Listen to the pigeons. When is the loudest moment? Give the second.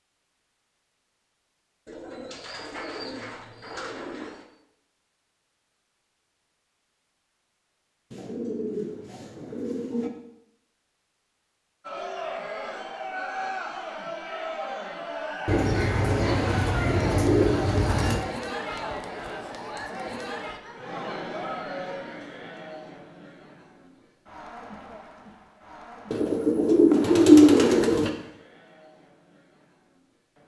27 s.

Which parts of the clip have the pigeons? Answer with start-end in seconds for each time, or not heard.
1.9-4.5, 8.1-10.1, 15.4-18.2, 26.1-28.1.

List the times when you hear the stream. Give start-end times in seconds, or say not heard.
not heard.